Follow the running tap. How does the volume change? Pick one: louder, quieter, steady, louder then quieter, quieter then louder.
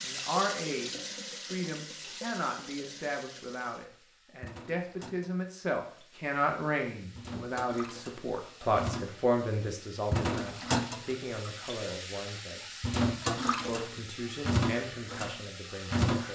quieter then louder.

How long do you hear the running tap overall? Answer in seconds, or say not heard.
16 s.